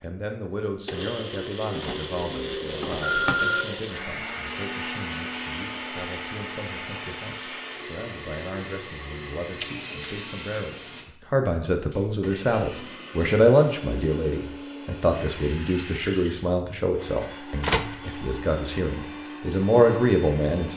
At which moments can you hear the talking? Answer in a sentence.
You can hear the talking from 0.0 to 20.7 s.